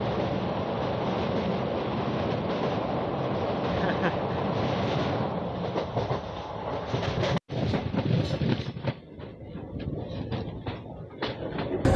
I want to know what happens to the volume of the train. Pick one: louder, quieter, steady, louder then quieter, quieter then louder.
quieter.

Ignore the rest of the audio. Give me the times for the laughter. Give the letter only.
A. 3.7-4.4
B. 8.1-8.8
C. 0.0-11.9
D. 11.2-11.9
A.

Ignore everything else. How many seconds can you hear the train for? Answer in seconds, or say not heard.
12 s.